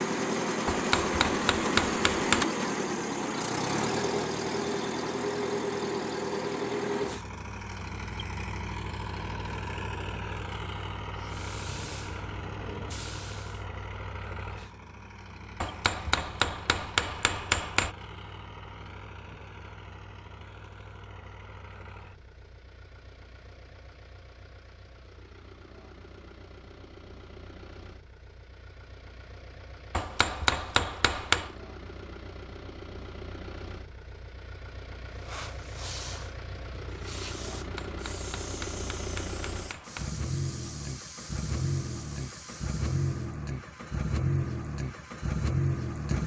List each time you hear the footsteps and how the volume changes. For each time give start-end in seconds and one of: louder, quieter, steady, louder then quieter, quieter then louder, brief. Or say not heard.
not heard.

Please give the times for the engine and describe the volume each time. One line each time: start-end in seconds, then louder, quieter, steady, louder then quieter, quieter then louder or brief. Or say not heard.
0.0-46.2 quieter then louder.